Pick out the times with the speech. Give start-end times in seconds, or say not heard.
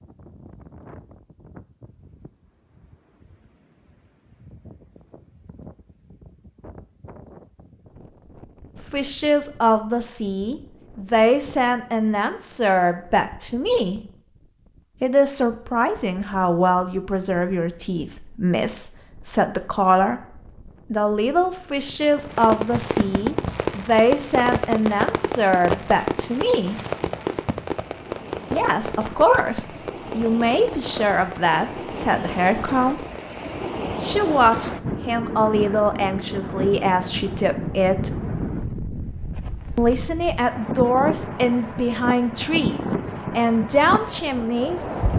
8.9-14.0, 15.0-20.2, 20.9-26.8, 28.5-33.0, 34.0-38.1, 39.8-44.9.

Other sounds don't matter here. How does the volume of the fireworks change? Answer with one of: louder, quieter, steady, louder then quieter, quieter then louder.
quieter.